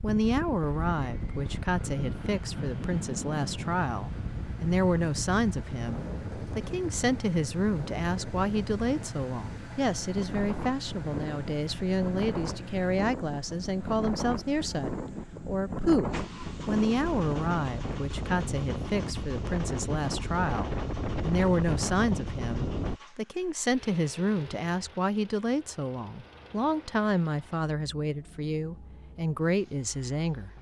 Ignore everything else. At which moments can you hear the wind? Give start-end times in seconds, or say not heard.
0.0-23.0.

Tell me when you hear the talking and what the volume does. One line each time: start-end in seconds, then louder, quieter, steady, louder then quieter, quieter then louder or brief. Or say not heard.
0.0-30.5 steady.